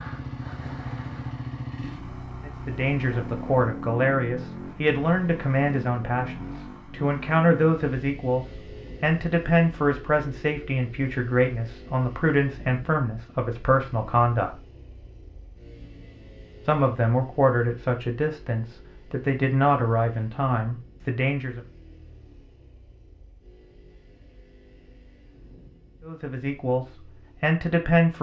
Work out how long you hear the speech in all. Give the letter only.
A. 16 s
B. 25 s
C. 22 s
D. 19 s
D.